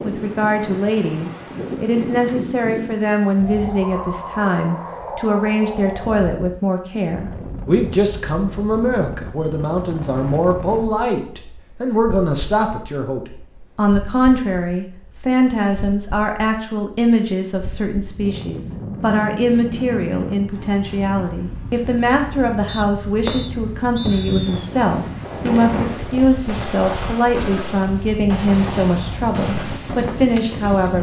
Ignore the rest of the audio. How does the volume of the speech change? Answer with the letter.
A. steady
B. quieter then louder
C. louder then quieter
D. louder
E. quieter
A.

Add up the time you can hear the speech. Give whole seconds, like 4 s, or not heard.
31 s.